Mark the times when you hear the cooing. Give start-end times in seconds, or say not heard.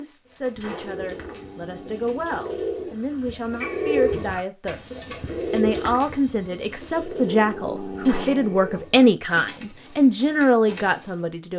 0.2-11.2.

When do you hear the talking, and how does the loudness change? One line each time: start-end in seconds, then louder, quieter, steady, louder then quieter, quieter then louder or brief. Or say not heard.
0.0-11.5 louder.